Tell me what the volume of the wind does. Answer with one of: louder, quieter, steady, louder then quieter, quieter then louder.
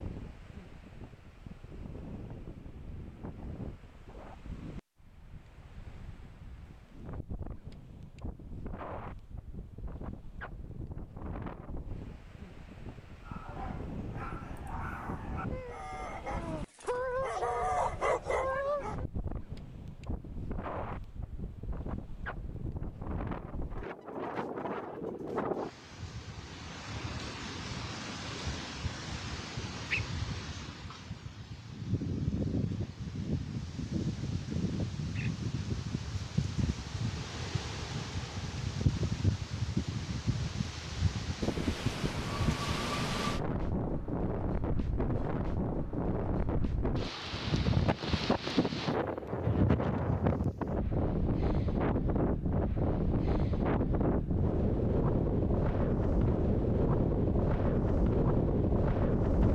louder.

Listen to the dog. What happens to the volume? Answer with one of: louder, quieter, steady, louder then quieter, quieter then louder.
louder.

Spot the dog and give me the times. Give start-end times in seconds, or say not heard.
13.2-19.1.